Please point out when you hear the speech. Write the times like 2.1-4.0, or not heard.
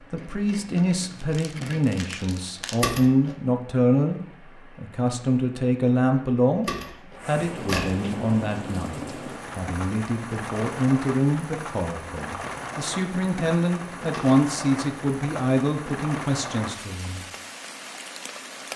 0.1-17.2.